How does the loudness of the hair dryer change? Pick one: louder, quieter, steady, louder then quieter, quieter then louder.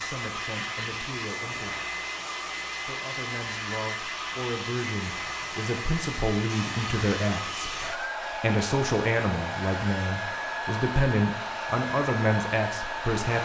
steady.